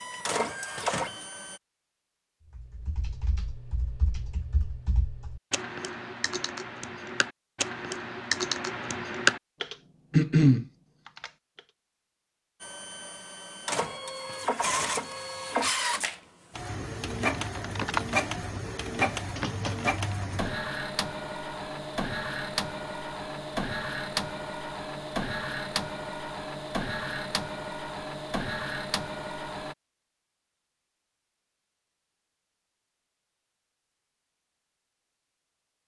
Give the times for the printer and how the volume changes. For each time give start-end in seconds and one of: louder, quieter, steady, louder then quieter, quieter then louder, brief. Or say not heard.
0.0-1.6 brief
12.6-29.8 steady.